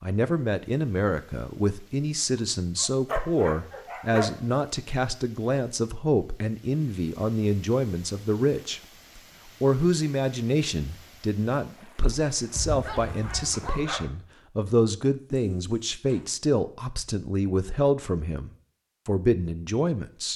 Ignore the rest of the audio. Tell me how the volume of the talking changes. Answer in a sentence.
The volume of the talking stays about the same.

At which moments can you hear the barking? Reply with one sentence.
The barking can be heard from 2.4 to 4.3 s and from 12.5 to 14.1 s.